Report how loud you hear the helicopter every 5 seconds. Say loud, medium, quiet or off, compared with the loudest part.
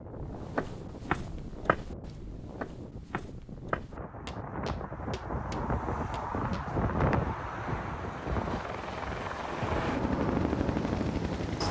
off, medium, loud.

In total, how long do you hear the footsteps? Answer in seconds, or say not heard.
7 s.